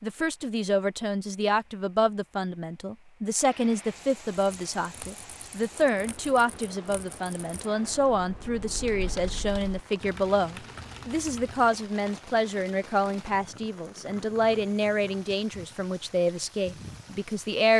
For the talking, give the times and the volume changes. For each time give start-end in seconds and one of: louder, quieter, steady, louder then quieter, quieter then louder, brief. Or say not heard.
0.0-17.7 steady.